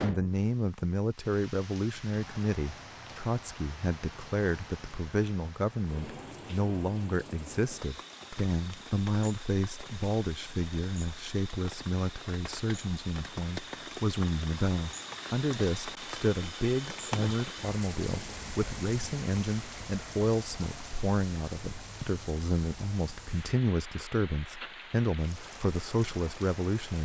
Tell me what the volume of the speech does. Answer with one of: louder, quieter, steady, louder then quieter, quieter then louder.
steady.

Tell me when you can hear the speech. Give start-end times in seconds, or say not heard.
0.0-27.0.